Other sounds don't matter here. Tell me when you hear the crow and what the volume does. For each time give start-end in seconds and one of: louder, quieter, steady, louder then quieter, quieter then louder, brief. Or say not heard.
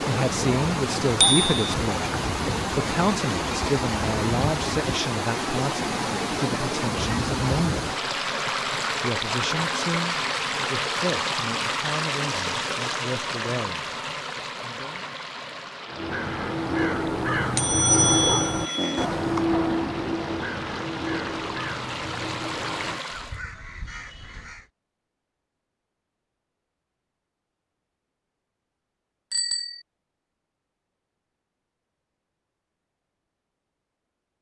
15.8-24.6 quieter.